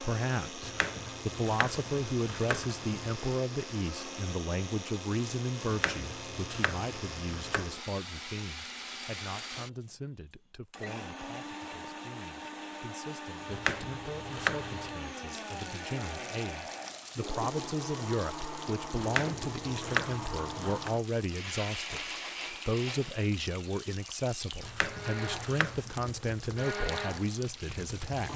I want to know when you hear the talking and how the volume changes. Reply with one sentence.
You can hear the talking from 0.0 to 28.3 s, getting quieter then louder.